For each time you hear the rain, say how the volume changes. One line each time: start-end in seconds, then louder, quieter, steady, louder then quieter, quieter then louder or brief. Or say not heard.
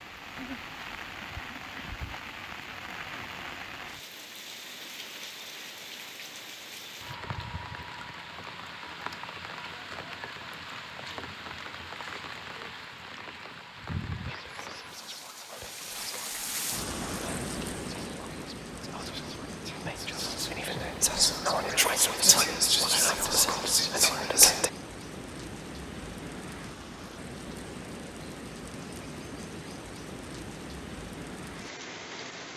0.0-32.5 steady.